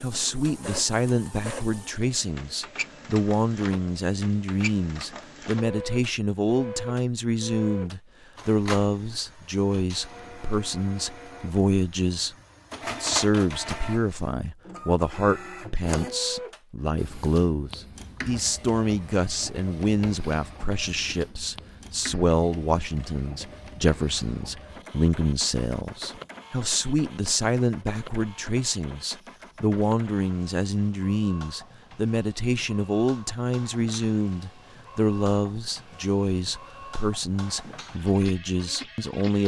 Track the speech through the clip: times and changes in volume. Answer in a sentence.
The speech can be heard from 0.0 to 39.4 s, at a steady volume.